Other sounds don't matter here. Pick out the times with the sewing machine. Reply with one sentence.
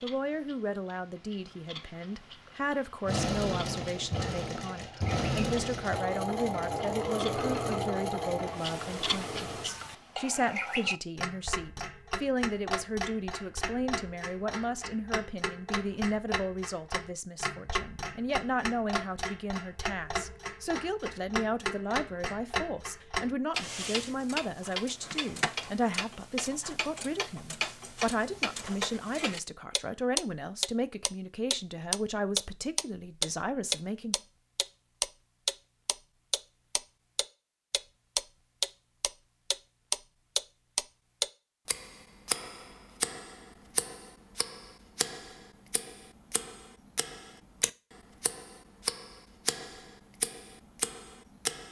The sewing machine can be heard from 3.0 to 9.9 s.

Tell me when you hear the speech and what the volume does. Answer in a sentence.
You can hear the speech from 0.0 to 34.1 s, at a steady volume.